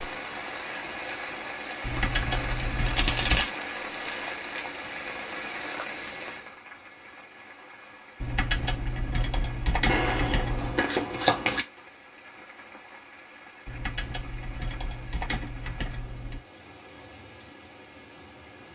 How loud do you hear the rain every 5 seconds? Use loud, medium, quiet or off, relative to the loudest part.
loud, medium, quiet, quiet.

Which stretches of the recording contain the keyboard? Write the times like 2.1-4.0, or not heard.
1.8-3.5, 8.2-10.8, 13.7-16.4.